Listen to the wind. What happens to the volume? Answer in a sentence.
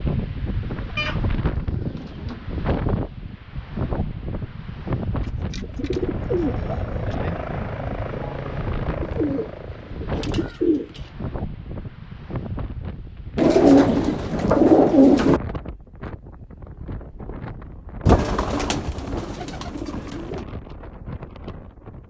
The volume of the wind goes down.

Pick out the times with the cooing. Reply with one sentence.
The cooing can be heard from 0.9 to 2.4 s, from 5.2 to 7.2 s, from 9.0 to 11.1 s, from 13.3 to 15.4 s and from 18.1 to 20.4 s.